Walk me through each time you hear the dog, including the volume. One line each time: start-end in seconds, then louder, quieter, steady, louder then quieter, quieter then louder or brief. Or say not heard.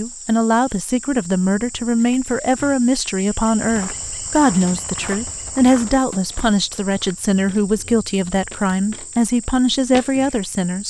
not heard.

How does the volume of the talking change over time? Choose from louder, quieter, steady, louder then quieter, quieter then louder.
steady.